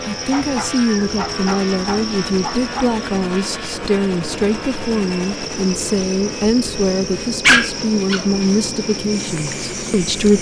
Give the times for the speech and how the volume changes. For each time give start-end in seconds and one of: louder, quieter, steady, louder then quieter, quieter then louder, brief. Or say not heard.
0.1-10.3 steady.